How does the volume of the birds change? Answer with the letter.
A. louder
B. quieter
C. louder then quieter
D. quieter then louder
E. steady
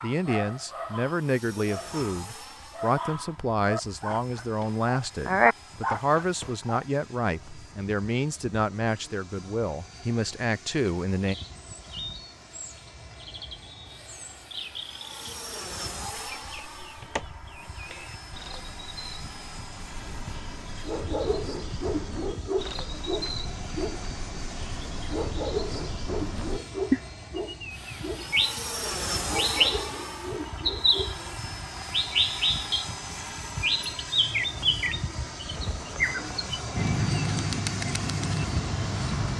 A.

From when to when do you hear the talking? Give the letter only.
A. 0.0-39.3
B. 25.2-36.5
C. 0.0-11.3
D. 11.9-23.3
C.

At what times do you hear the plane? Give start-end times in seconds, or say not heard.
0.0-39.3.